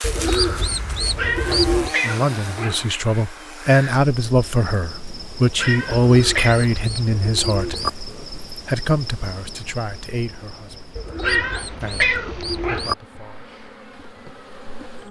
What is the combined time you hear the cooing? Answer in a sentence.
You can hear the cooing for 6 seconds altogether.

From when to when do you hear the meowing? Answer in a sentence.
The meowing can be heard from 1.1 to 2.9 s, from 5.5 to 6.7 s and from 11.2 to 12.9 s.